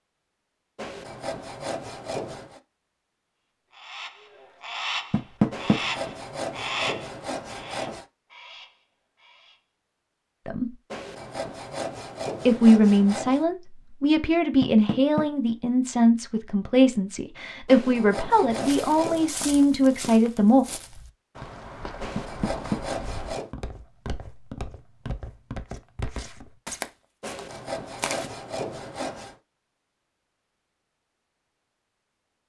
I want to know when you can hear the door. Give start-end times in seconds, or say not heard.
5.1-5.8, 14.6-15.2, 22.1-22.8.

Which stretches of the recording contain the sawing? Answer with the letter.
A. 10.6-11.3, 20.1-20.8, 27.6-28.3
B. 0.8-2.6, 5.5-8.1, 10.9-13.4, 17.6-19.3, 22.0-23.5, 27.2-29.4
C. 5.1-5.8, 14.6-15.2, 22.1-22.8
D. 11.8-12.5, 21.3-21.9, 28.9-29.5
B.